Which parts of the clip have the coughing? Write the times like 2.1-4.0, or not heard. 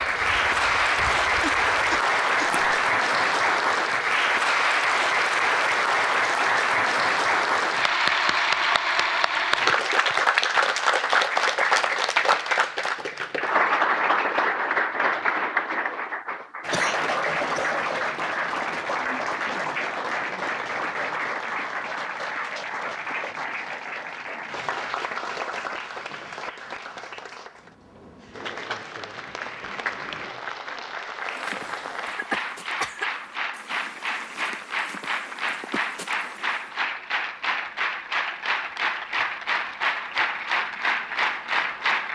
1.4-2.5, 16.7-17.8, 32.1-33.1.